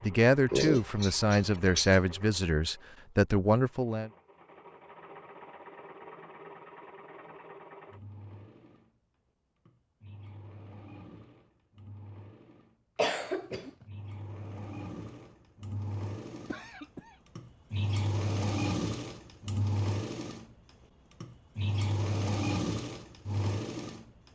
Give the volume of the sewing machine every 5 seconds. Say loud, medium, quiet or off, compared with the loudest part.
quiet, quiet, quiet, loud, loud.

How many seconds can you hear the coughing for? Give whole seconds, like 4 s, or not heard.
3 s.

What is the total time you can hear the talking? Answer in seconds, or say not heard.
4 s.